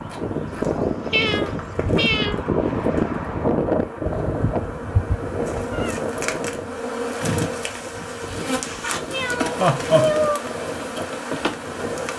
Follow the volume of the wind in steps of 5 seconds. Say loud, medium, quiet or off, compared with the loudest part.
loud, medium, medium.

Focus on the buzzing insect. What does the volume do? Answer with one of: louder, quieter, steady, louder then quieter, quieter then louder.
louder.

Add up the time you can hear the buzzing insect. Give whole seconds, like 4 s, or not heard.
12 s.